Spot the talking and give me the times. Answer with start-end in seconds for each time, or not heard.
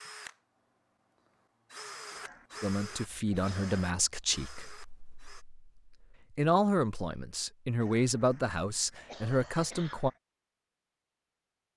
2.6-10.1.